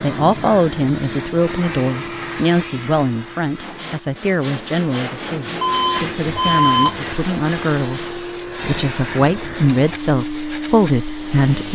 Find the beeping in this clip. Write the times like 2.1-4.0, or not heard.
5.6-7.0.